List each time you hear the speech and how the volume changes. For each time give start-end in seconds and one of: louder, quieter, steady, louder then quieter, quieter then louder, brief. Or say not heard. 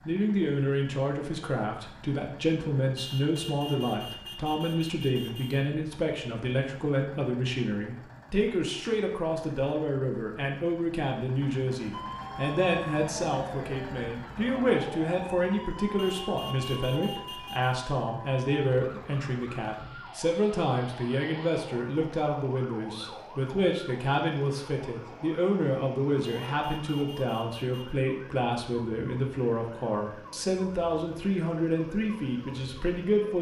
0.1-33.3 steady.